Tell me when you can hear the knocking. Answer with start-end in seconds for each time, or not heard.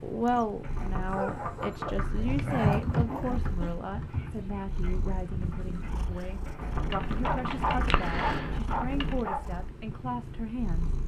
0.6-2.2, 6.5-8.1.